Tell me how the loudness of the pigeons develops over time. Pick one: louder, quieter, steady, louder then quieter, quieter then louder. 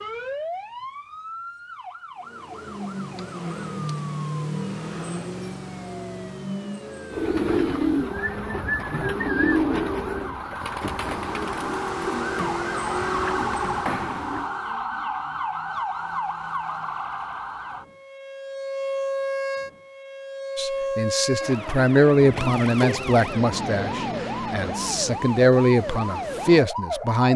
quieter.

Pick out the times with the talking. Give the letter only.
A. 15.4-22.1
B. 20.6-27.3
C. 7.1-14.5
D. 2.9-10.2
B.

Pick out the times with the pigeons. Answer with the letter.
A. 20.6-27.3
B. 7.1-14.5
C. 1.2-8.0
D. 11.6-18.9
B.